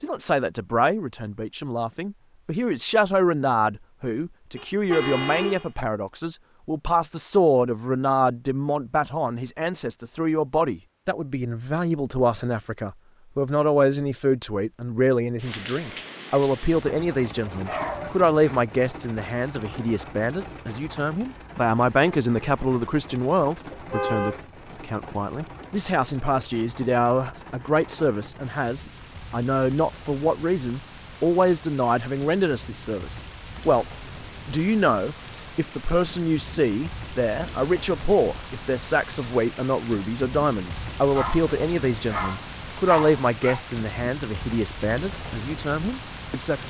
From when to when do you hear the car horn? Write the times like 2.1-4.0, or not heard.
4.5-5.7, 23.7-24.4.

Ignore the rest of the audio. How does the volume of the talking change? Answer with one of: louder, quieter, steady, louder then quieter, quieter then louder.
steady.